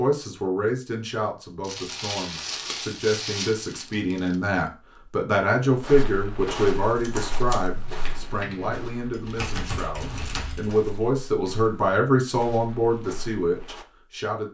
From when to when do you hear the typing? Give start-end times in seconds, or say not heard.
6.9-10.8.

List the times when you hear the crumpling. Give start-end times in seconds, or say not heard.
1.6-4.3, 9.2-10.5.